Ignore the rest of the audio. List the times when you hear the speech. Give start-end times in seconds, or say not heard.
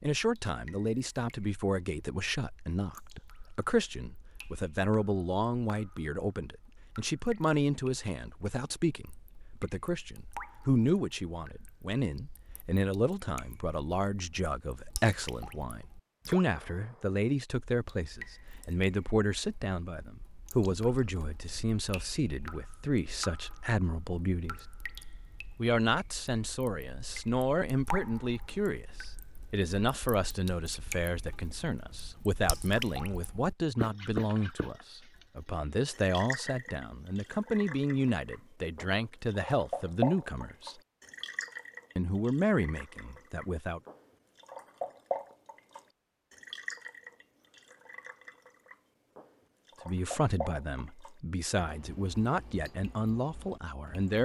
0.0-24.6, 25.6-40.8, 42.0-43.8, 49.9-54.1.